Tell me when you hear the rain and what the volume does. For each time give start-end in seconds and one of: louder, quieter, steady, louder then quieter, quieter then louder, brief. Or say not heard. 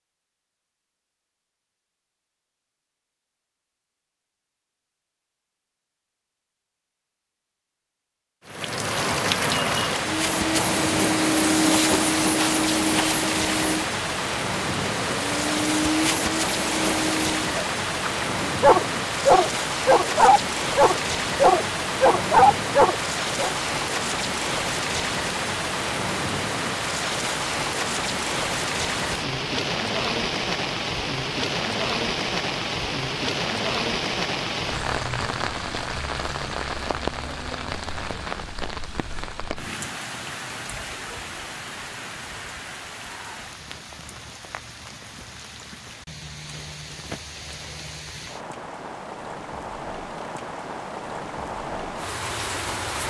8.4-53.0 quieter.